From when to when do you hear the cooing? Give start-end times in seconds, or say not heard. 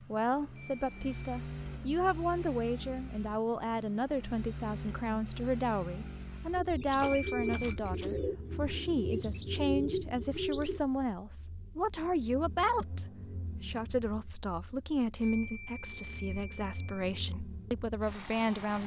6.5-10.8.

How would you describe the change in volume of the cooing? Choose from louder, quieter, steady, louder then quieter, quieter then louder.
quieter then louder.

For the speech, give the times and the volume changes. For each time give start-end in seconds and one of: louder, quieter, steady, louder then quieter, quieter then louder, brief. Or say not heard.
0.0-18.8 steady.